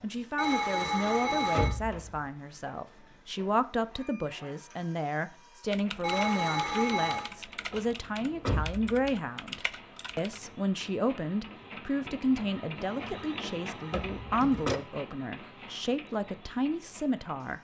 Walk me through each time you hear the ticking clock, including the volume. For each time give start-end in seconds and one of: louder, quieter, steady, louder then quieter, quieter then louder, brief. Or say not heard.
not heard.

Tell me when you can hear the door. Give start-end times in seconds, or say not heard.
0.8-2.1, 7.7-8.9, 13.9-14.8.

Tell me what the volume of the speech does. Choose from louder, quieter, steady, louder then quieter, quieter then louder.
steady.